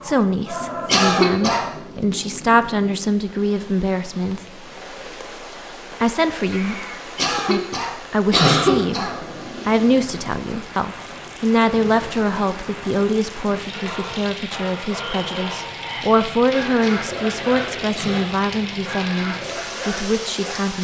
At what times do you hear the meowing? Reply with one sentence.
You can hear the meowing from 6.5 to 7.2 s.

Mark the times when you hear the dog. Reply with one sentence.
You can hear the dog from 0.0 to 2.2 s and from 13.7 to 20.6 s.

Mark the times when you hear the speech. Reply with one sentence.
You can hear the speech from 0.0 to 4.6 s and from 6.0 to 20.8 s.